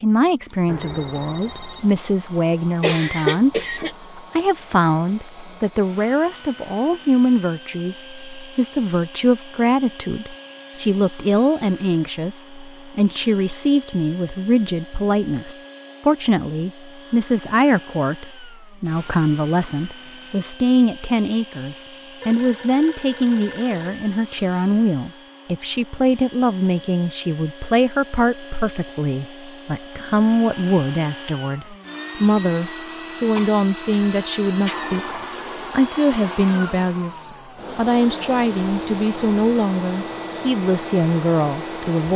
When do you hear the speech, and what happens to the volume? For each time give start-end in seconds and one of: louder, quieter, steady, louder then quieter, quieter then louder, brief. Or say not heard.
0.0-42.1 steady.